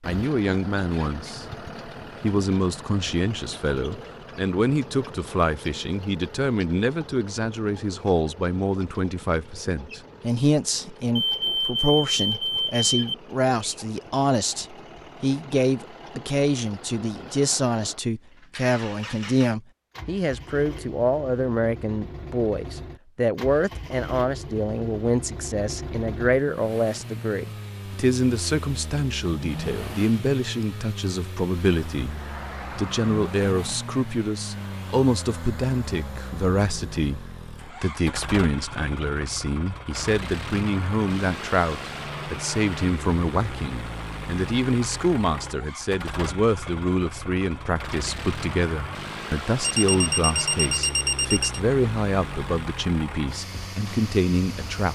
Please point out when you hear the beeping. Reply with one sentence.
You can hear the beeping from 11.2 to 13.2 s and from 49.6 to 51.6 s.